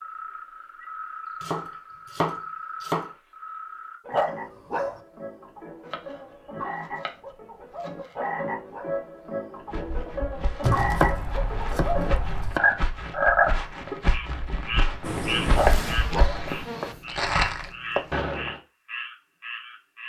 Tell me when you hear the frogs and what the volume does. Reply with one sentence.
The frogs can be heard from 0.0 to 20.0 s, getting louder then quieter.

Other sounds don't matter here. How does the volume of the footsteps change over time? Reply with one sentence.
The loudness of the footsteps goes up.